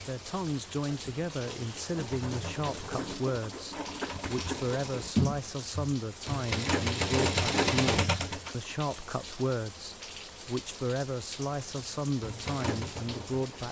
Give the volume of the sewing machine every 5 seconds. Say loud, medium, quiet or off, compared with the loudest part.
medium, loud, medium.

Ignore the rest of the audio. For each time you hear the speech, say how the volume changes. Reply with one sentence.
You can hear the speech from 0.0 to 13.6 s, at a steady volume.